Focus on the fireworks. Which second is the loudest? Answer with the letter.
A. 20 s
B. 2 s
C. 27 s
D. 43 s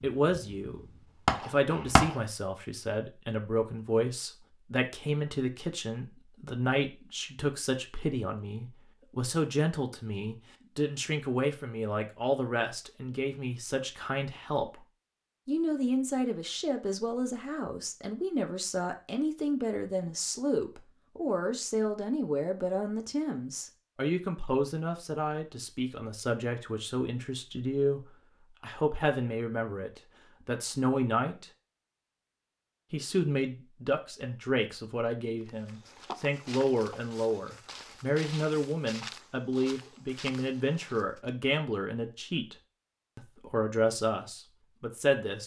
B.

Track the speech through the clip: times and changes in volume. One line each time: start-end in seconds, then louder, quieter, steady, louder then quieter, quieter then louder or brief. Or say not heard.
0.0-0.8 brief
1.4-14.8 steady
15.4-31.5 steady
32.9-42.5 steady
43.1-45.4 brief.